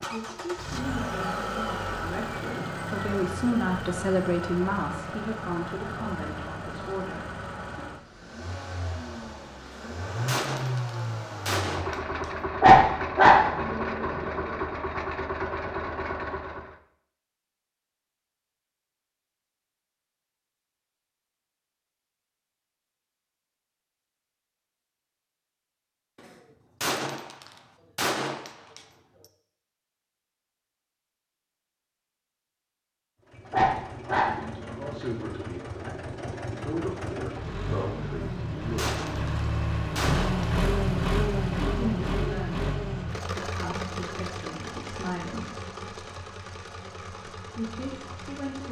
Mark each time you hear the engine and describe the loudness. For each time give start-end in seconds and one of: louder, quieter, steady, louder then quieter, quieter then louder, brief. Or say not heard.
0.0-16.8 quieter then louder
33.2-48.6 louder then quieter.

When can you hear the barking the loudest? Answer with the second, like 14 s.
13 s.